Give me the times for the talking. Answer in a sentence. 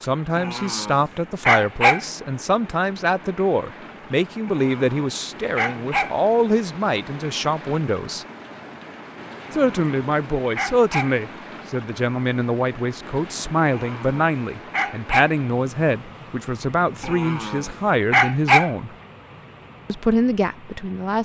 The talking can be heard from 0.0 to 8.2 s, from 9.5 to 18.9 s and from 19.9 to 21.2 s.